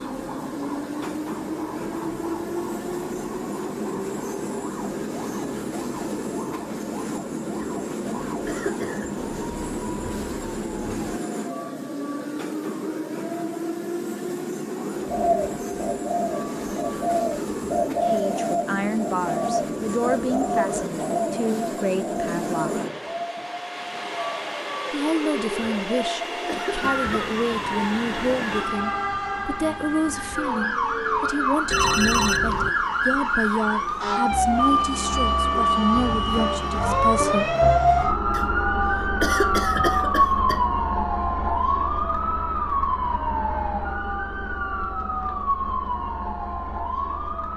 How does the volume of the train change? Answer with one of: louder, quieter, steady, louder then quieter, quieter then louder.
quieter.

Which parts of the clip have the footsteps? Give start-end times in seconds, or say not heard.
not heard.